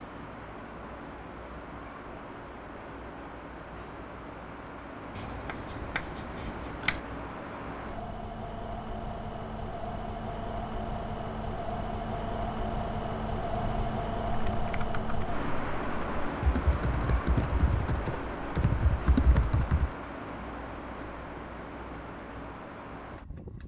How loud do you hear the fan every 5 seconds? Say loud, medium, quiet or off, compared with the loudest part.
medium, medium, loud, loud, medium.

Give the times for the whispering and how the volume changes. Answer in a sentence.
You can't hear the whispering here.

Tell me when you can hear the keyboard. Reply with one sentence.
The keyboard can be heard from 13.5 to 19.9 s.